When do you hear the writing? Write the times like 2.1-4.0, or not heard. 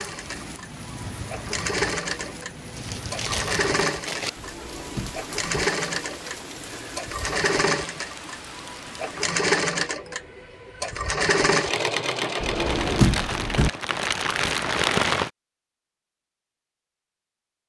not heard.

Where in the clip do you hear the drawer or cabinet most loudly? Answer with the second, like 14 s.
13 s.